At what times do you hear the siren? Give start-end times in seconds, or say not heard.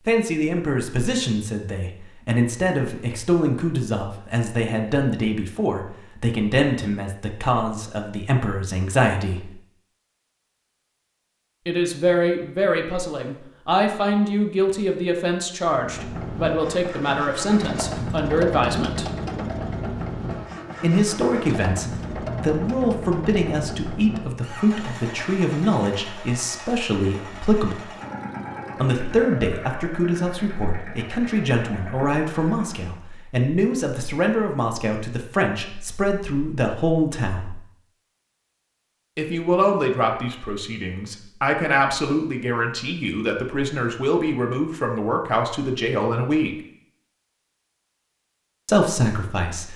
not heard.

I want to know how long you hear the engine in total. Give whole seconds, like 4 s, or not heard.
17 s.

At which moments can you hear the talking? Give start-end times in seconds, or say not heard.
0.1-9.6, 11.7-19.1, 20.8-27.9, 28.8-37.5, 39.1-46.5, 48.6-49.7.